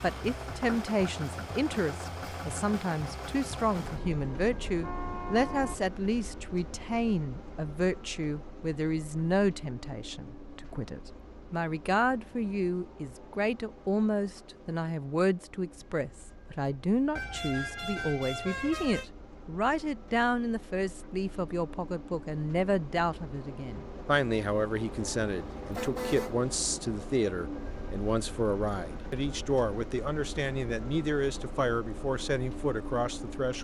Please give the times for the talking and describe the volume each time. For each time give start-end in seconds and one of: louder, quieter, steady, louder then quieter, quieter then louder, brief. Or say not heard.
0.0-33.5 steady.